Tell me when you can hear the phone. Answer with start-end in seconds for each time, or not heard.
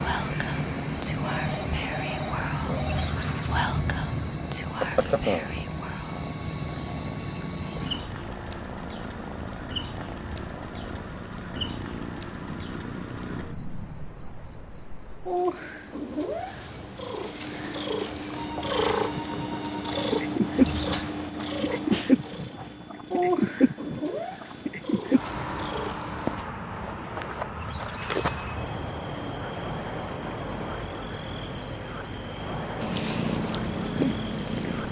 1.2-3.0, 18.3-20.1, 27.9-28.6.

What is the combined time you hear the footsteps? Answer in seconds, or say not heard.
not heard.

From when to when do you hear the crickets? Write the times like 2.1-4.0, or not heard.
0.0-34.8.